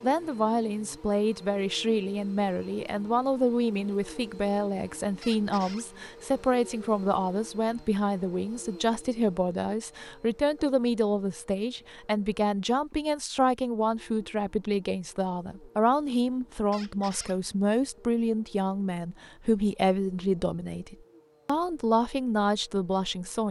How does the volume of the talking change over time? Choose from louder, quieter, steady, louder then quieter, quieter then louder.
steady.